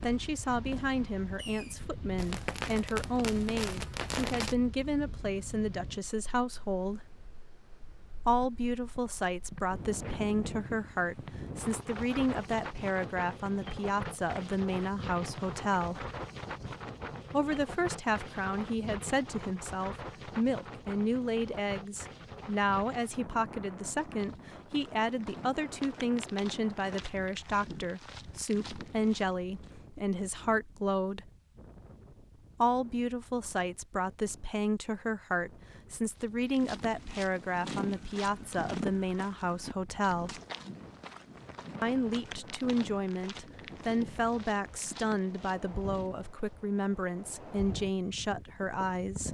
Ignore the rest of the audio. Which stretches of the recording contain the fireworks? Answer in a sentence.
The fireworks can be heard from 0.0 to 4.5 s.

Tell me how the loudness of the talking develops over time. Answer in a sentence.
The loudness of the talking stays about the same.